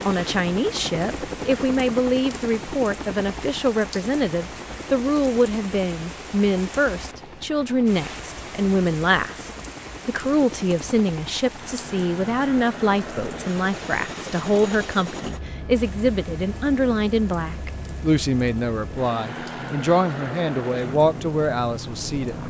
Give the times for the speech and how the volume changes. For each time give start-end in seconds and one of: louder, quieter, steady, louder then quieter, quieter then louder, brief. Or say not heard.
0.0-22.4 steady.